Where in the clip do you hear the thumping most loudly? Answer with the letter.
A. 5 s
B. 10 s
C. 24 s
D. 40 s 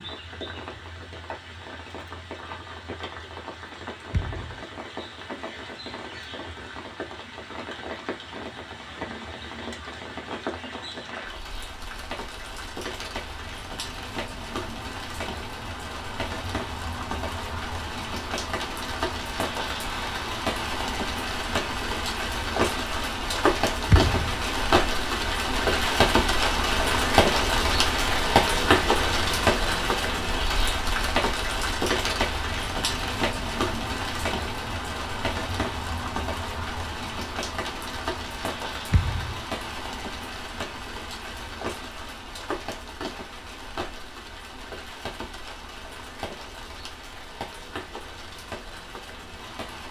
C.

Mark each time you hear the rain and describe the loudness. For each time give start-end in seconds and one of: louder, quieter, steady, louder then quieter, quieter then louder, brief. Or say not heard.
0.0-49.8 louder then quieter.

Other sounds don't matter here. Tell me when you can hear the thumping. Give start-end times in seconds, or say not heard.
4.1-4.6, 23.9-24.4, 38.9-39.4.